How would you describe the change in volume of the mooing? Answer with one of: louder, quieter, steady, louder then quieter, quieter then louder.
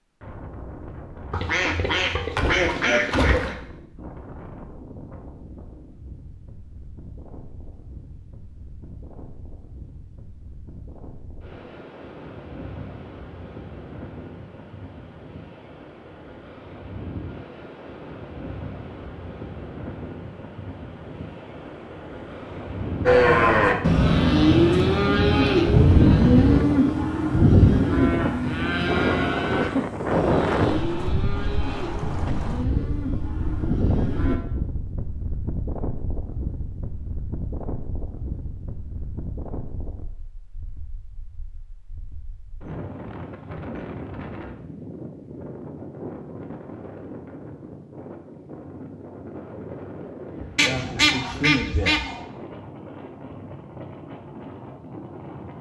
quieter.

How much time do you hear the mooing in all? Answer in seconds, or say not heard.
11 s.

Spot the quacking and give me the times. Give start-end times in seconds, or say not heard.
1.3-3.5, 50.5-52.2.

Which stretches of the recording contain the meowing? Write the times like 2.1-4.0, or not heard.
not heard.